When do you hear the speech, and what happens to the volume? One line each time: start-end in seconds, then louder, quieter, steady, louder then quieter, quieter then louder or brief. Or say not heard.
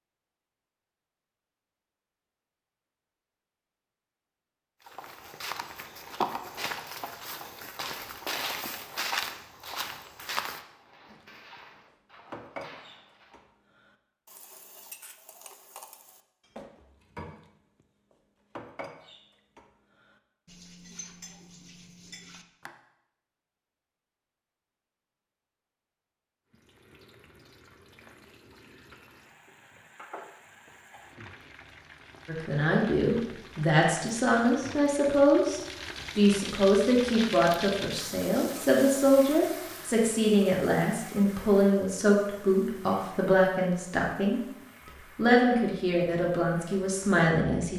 32.2-44.4 steady
45.1-47.7 brief.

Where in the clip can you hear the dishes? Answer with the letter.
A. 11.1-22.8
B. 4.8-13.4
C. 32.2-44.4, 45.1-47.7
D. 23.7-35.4
A.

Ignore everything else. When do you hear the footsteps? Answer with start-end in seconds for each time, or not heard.
4.8-13.4.